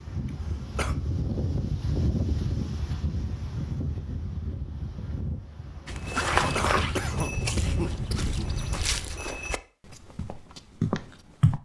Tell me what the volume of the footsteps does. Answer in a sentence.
The volume of the footsteps goes down, then up.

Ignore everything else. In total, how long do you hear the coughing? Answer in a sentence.
The coughing can be heard for 3 seconds in total.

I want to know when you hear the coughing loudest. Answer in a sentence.
The volume of the coughing peaks at 7 seconds.